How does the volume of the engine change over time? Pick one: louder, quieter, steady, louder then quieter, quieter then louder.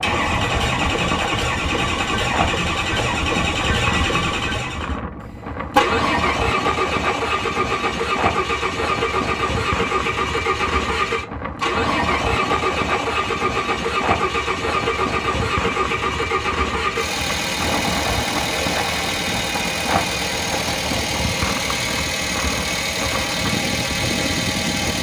steady.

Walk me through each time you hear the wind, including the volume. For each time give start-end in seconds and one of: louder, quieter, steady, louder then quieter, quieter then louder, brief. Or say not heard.
0.0-24.9 steady.